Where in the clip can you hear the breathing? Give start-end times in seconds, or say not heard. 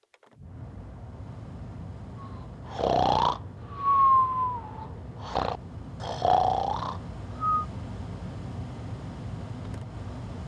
2.2-7.7.